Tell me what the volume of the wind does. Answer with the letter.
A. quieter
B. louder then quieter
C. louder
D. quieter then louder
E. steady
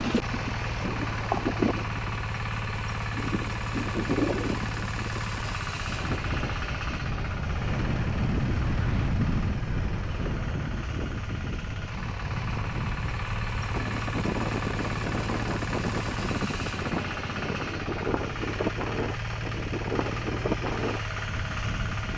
E.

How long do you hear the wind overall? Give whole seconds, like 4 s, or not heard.
22 s.